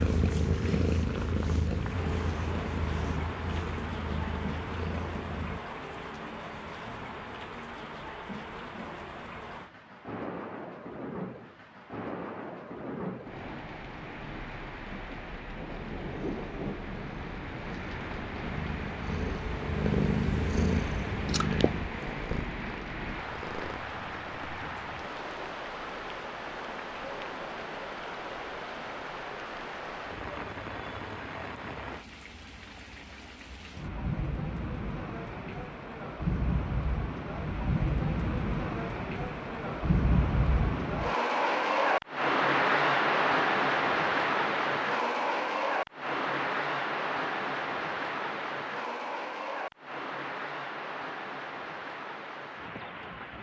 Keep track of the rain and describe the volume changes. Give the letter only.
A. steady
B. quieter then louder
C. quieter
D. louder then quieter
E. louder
E.